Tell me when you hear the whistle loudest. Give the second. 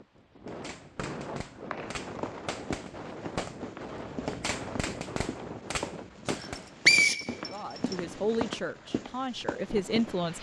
7 s.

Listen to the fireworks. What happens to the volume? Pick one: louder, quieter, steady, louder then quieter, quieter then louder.
louder.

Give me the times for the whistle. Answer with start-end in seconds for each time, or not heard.
0.9-2.5, 6.3-8.0.